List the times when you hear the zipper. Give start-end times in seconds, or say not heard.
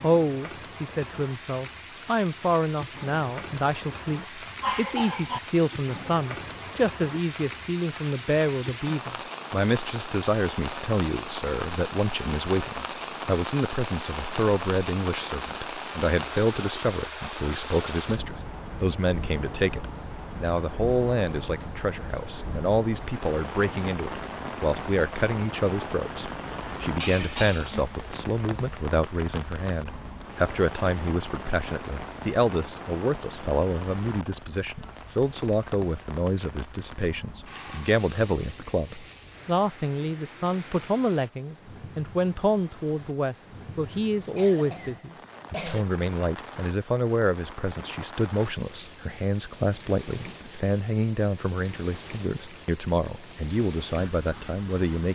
not heard.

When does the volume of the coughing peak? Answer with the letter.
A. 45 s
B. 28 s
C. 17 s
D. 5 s
D.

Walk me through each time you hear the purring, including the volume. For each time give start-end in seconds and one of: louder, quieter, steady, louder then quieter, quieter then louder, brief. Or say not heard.
not heard.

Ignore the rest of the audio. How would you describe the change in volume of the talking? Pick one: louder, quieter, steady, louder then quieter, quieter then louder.
steady.